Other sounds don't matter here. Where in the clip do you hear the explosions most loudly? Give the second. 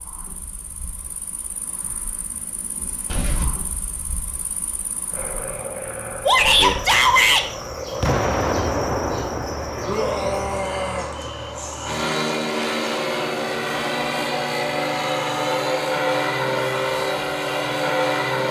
8 s.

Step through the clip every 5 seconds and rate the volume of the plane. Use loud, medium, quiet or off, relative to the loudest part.
off, medium, loud, loud.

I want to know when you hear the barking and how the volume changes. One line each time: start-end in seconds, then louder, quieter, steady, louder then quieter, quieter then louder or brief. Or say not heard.
not heard.